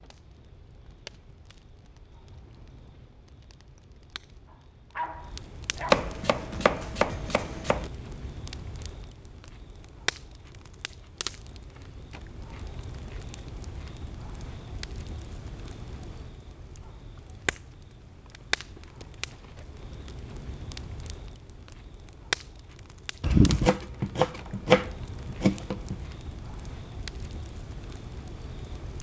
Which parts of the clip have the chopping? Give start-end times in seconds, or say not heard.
5.9-7.9, 23.2-25.9.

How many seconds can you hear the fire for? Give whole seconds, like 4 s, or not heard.
29 s.